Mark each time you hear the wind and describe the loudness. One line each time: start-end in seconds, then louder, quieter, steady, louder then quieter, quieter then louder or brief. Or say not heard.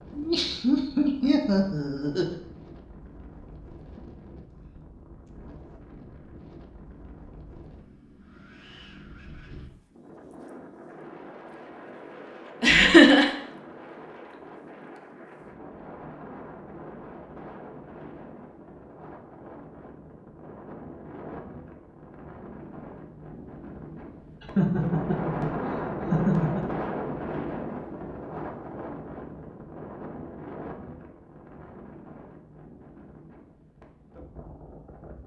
0.0-35.2 louder then quieter.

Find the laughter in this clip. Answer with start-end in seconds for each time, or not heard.
0.1-2.4, 12.6-13.2, 24.4-26.6.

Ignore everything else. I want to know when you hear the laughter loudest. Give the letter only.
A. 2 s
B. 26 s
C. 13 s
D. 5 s
C.